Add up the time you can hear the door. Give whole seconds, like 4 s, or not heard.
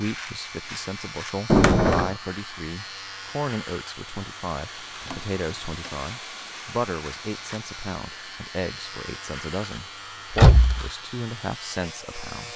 2 s.